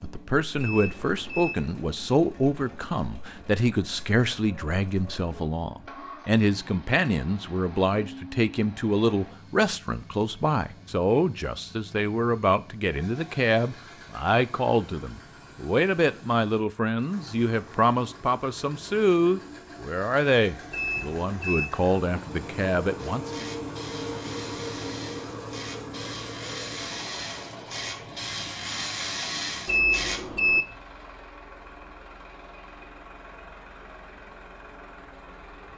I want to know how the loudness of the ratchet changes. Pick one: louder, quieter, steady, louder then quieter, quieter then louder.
louder.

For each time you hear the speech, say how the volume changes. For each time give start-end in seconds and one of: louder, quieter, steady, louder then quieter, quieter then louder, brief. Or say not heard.
0.0-23.4 steady.